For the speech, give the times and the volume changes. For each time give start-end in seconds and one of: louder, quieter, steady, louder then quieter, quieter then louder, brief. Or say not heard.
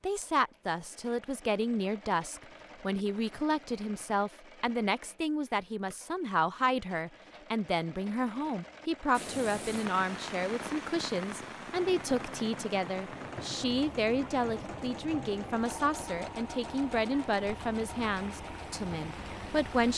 0.0-19.9 steady.